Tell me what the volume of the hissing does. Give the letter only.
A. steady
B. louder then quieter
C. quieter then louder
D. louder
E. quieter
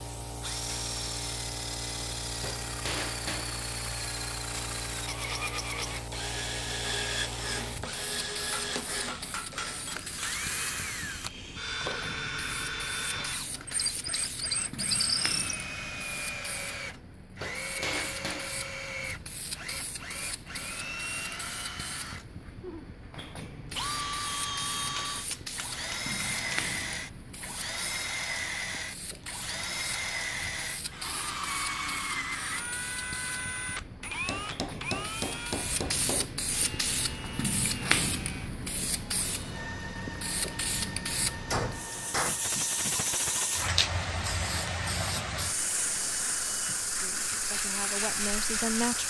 D.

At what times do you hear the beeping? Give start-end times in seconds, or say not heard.
not heard.